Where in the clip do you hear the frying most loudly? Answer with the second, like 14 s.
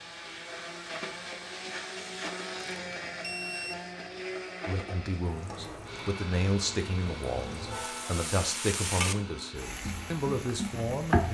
11 s.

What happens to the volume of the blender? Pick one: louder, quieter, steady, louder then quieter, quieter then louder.
quieter.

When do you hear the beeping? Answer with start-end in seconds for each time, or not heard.
2.6-3.8.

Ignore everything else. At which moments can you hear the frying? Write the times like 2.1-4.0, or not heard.
5.2-11.2.